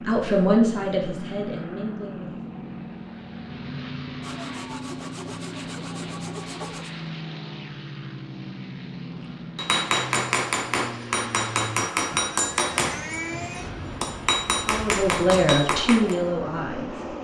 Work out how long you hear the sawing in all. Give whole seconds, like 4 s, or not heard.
3 s.